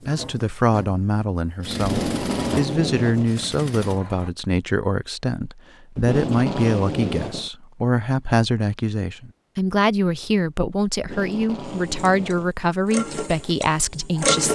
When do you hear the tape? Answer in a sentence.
The tape can be heard from 1.8 to 3.4 s, from 6.0 to 7.5 s and from 10.9 to 12.6 s.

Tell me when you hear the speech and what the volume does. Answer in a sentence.
The speech can be heard from 0.1 to 14.4 s, at a steady volume.